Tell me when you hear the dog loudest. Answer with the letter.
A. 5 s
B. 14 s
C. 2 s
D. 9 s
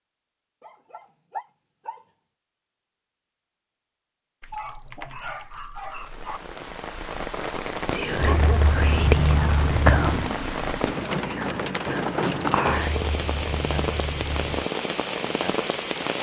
D.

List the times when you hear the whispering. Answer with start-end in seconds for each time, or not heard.
7.4-13.0.